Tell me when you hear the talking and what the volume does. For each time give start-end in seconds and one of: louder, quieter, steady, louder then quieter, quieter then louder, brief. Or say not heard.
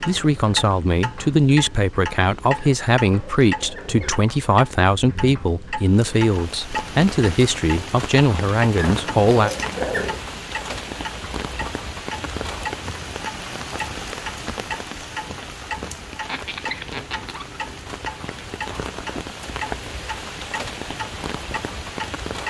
0.0-9.5 steady.